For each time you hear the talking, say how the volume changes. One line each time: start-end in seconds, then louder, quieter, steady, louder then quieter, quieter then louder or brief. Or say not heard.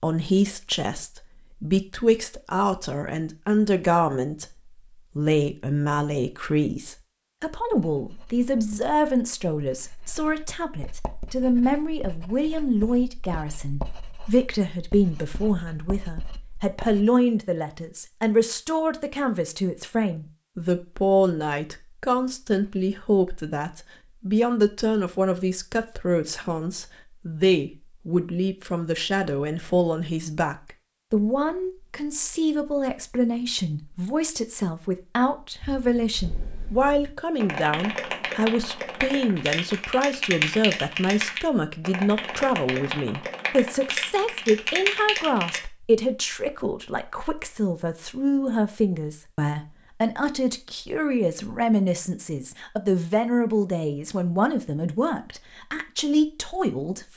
0.0-57.1 steady.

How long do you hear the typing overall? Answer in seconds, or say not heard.
10 s.